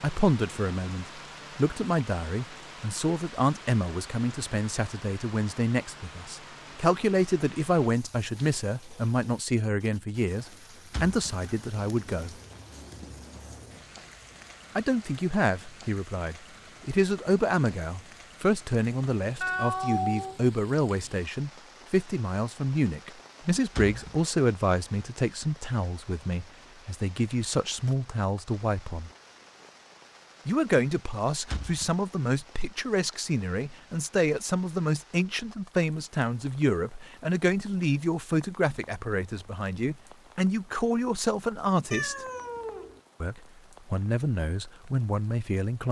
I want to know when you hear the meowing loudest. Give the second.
20 s.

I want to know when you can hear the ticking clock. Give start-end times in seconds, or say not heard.
not heard.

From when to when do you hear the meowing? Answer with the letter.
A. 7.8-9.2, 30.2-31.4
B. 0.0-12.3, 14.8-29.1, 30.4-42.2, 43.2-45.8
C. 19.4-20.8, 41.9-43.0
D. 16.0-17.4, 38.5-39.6
C.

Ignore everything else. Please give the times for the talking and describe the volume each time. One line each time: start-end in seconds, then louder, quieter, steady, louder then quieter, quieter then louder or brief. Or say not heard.
0.0-12.3 steady
14.8-29.1 steady
30.4-42.2 steady
43.2-45.8 brief.